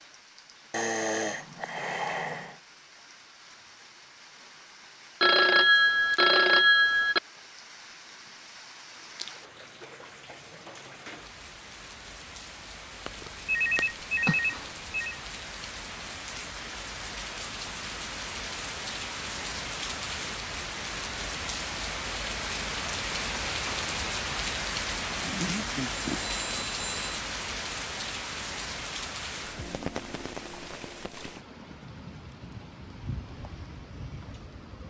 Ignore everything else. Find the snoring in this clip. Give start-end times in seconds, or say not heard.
0.7-2.6, 25.1-26.6.